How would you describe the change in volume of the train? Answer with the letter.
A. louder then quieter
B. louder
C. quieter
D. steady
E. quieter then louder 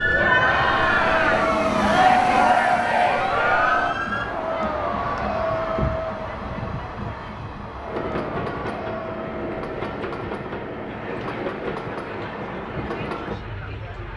C.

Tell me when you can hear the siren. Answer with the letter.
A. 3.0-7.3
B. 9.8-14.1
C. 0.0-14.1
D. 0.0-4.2
D.